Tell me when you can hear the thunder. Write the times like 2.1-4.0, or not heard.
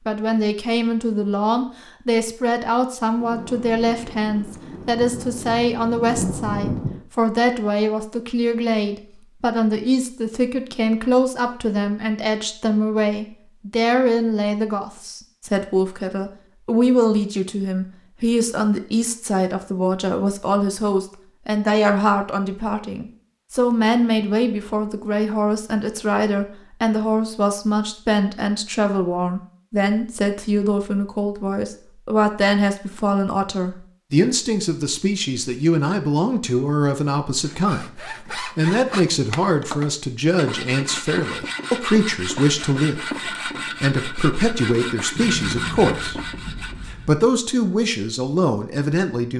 3.2-7.0, 45.1-47.1.